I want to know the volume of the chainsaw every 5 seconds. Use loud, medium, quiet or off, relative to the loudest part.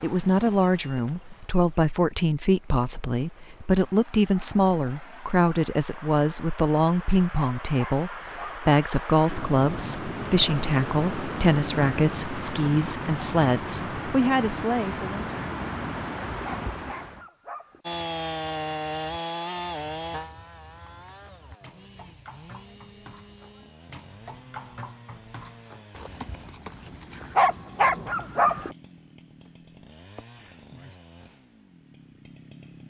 off, off, off, loud, quiet, quiet, quiet.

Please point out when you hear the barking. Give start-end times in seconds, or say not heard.
7.3-8.5, 16.4-17.8, 27.4-28.8.